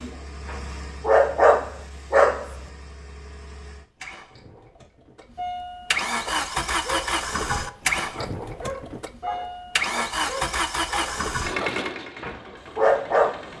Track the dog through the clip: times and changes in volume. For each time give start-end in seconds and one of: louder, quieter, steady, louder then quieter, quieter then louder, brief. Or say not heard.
0.0-2.5 brief
6.2-13.4 louder.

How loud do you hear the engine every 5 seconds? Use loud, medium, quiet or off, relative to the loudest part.
quiet, loud, loud.